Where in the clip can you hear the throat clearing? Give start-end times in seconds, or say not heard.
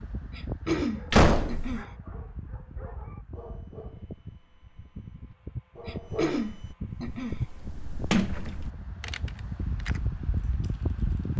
0.3-1.9, 5.8-7.4.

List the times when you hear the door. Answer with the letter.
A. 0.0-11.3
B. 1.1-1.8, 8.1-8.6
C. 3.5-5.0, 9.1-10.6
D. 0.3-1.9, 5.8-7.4
B.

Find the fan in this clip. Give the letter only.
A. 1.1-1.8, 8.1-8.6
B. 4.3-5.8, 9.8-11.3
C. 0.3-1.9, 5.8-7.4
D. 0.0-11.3
D.